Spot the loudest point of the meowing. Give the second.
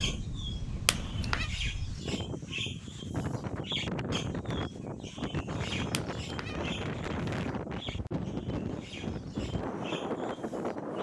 1 s.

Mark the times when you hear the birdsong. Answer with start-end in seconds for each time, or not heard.
0.0-10.9.